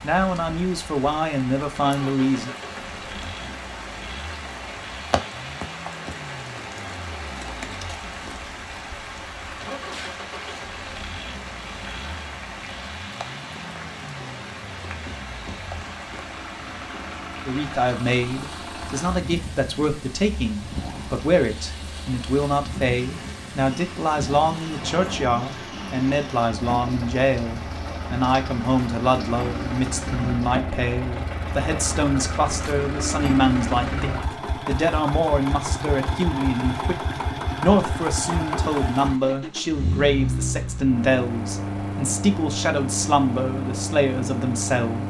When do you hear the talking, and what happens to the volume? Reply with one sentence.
You can hear the talking briefly from 0.0 to 2.5 s; from 17.4 to 37.0 s, at a steady volume; and from 37.6 to 45.0 s, at a steady volume.